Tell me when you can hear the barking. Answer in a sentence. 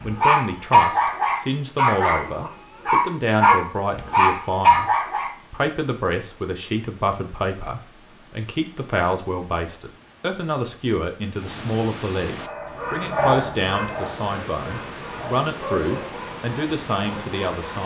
The barking can be heard from 0.0 to 5.3 s and from 12.2 to 17.8 s.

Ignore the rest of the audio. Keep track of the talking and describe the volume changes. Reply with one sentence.
The volume of the talking stays about the same.